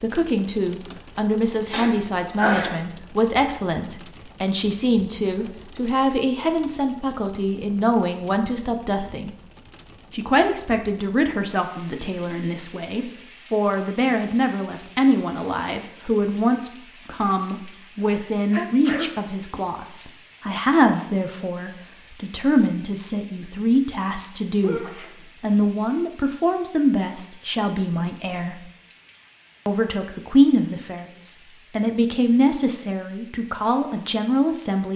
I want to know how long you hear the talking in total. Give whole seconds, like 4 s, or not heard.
33 s.